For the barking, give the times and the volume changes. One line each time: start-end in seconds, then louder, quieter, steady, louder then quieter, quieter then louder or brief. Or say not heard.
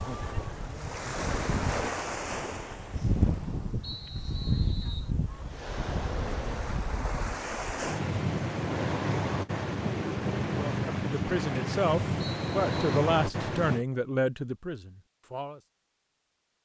not heard.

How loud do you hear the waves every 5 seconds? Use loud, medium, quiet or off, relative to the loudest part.
loud, loud, loud, off.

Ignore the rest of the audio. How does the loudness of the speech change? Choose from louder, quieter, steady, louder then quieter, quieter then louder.
quieter.